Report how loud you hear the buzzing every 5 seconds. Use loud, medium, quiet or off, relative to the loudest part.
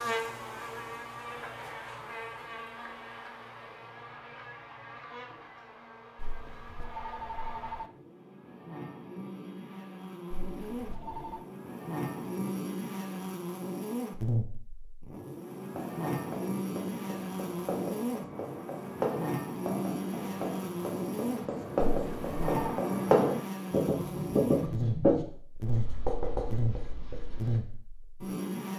medium, medium, loud, loud, loud, loud.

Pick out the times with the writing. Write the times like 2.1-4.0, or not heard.
15.8-27.6.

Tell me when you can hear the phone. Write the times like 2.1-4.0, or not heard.
6.2-7.9, 10.4-11.4, 21.8-22.8.